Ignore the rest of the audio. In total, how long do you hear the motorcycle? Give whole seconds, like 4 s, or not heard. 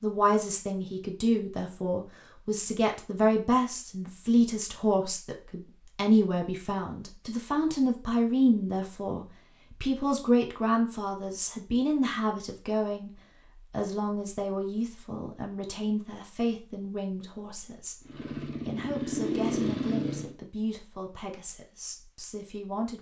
2 s.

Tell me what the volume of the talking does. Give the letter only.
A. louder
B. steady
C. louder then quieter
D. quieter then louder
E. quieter
E.